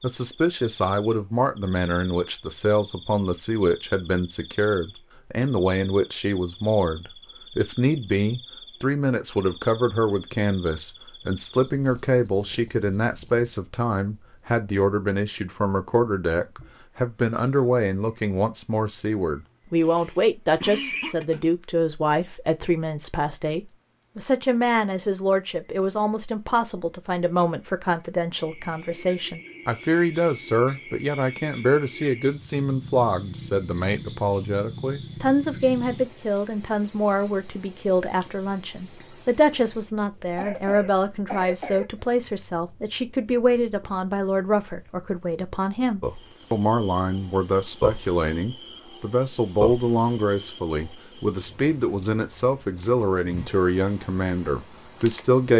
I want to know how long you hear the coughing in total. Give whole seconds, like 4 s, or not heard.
3 s.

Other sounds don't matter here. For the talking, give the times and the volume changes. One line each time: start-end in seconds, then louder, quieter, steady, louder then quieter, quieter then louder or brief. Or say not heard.
0.0-55.5 steady.